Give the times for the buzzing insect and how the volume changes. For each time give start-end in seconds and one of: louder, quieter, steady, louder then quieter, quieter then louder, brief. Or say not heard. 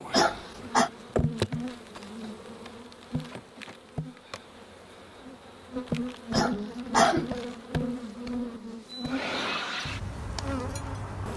0.0-11.3 quieter then louder.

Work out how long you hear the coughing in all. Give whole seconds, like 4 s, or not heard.
2 s.